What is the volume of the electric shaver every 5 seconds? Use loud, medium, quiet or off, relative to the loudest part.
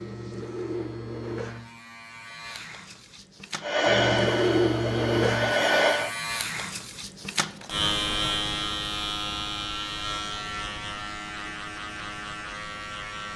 loud, loud, medium.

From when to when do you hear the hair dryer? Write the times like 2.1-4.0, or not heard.
3.6-6.1.